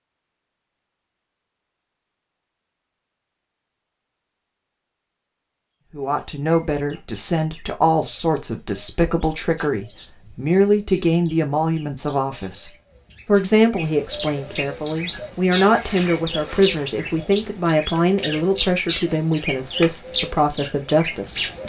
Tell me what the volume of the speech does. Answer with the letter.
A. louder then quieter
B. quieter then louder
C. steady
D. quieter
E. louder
C.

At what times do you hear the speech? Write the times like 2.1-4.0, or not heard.
5.9-21.6.